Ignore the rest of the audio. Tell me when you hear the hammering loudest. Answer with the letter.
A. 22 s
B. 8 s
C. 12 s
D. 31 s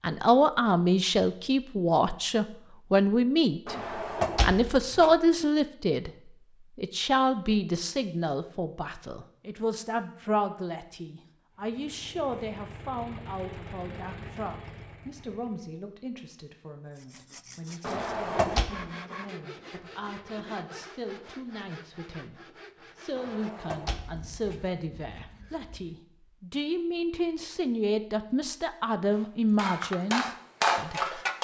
D.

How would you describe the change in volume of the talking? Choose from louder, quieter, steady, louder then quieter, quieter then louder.
quieter then louder.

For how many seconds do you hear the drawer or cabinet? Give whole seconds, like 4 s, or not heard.
4 s.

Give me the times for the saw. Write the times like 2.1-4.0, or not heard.
16.9-26.0.